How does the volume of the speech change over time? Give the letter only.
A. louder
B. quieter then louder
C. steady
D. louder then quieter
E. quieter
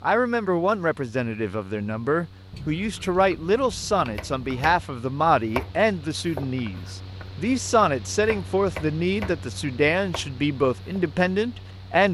C.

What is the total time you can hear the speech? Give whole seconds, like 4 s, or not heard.
12 s.